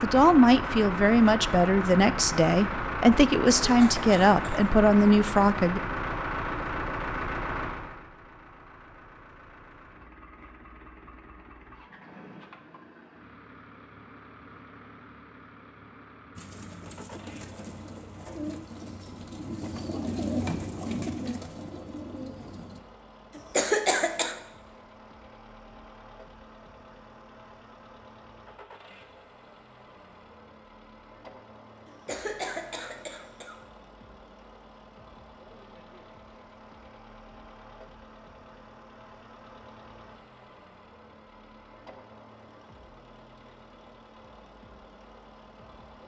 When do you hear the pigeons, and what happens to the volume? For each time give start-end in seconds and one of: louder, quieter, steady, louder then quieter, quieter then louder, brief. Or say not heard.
16.4-22.8 louder then quieter.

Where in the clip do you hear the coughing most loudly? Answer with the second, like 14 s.
24 s.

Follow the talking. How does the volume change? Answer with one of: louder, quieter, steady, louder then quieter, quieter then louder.
steady.